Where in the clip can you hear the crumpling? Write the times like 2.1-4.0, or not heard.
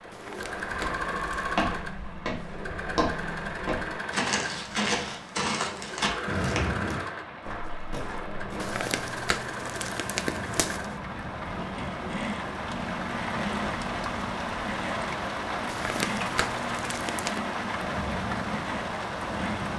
0.1-1.5, 8.6-10.9, 15.7-17.4.